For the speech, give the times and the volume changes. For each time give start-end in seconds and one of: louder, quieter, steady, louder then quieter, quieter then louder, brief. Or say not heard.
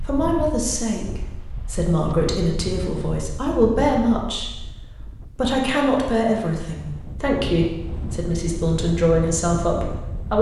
0.0-10.3 steady.